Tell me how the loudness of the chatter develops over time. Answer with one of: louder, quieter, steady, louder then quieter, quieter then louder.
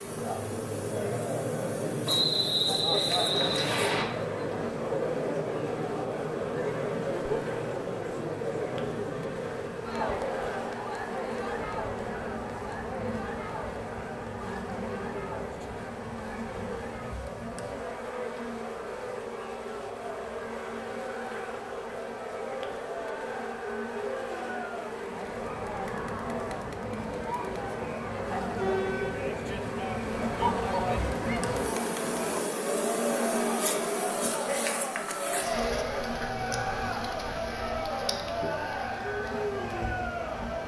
quieter then louder.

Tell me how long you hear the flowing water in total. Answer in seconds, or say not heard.
not heard.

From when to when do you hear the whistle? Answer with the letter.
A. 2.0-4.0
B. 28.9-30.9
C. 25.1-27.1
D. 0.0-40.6
A.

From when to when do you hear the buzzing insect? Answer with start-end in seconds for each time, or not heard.
0.0-40.6.